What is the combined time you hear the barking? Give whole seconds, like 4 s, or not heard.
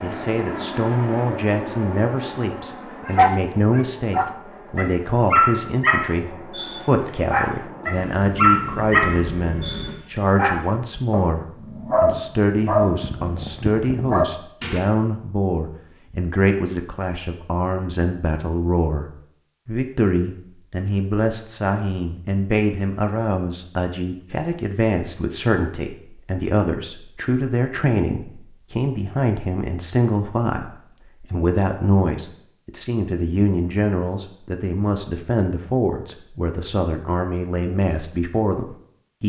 12 s.